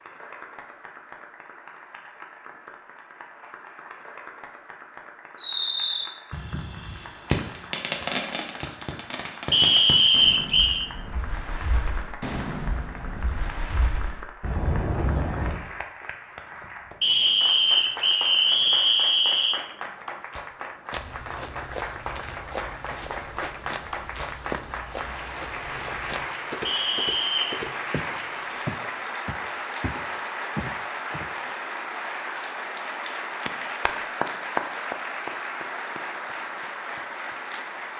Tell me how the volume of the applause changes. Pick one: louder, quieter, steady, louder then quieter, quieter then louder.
louder.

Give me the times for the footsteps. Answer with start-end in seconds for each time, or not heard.
20.9-31.4.